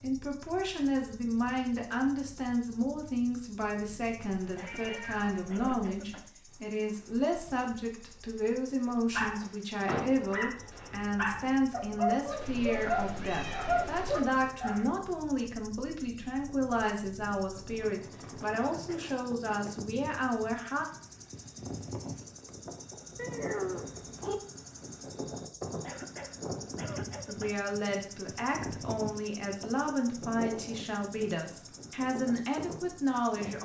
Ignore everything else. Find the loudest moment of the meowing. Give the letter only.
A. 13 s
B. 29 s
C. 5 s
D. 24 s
D.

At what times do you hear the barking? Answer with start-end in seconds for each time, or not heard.
9.1-14.8.